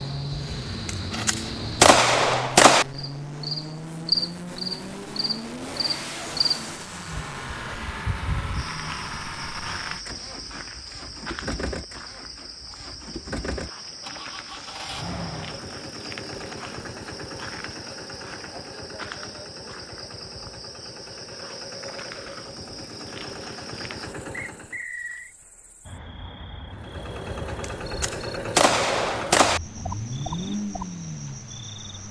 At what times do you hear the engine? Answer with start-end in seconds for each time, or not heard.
0.0-24.8, 26.7-32.0.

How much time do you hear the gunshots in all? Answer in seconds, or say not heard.
4 s.